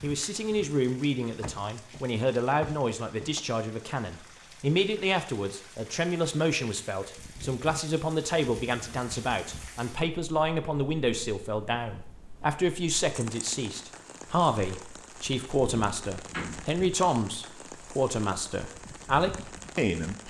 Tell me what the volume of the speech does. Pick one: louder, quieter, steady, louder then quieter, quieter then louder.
steady.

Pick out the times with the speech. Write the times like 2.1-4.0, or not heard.
0.0-20.2.